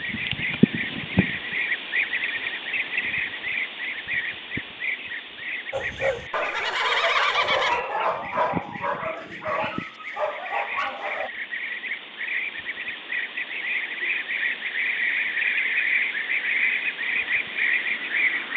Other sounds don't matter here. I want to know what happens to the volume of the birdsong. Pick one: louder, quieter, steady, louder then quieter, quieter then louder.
quieter then louder.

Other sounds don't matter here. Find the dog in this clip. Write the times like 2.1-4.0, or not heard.
5.7-11.3.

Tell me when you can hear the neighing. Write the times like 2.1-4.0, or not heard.
6.3-7.8.